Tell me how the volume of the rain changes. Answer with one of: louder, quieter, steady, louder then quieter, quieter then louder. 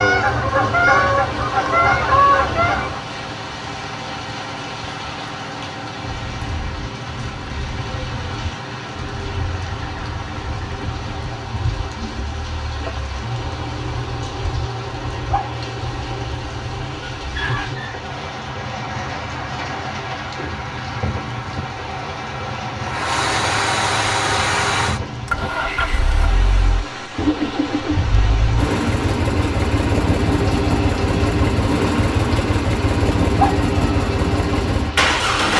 steady.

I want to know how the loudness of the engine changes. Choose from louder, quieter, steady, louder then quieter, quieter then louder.
louder.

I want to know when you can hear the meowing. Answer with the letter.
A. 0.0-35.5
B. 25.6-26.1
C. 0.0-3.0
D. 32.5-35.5
B.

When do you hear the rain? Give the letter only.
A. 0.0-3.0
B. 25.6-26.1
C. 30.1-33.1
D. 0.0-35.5
D.